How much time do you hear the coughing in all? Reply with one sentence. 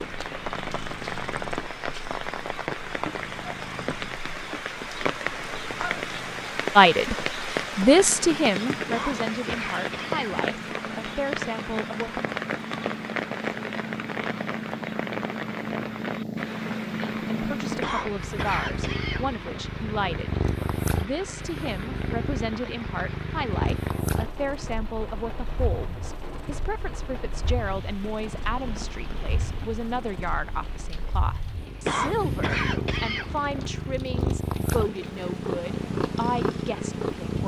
The coughing can be heard for 5 seconds in total.